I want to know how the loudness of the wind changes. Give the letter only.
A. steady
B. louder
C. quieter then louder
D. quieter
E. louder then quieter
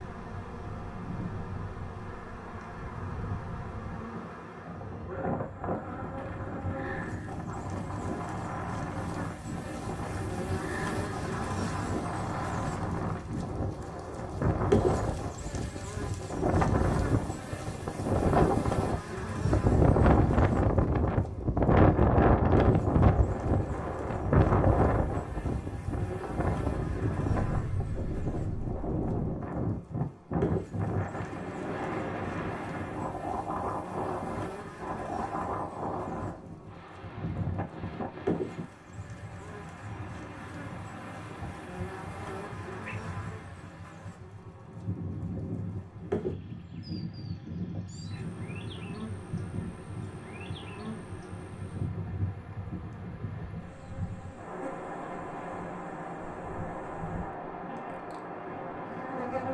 E.